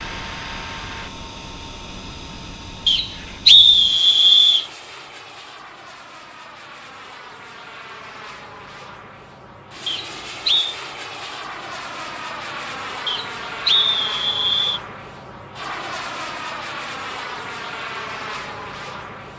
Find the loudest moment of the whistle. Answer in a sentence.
The loudest moment of the whistle is at 4 seconds.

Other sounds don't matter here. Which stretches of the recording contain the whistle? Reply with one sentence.
You can hear the whistle from 2.9 to 4.7 s, from 9.8 to 10.8 s and from 13.1 to 14.8 s.